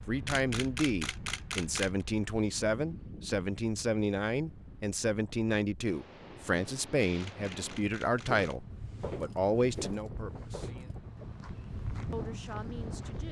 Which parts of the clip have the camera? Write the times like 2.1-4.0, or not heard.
0.2-2.0, 7.2-8.6.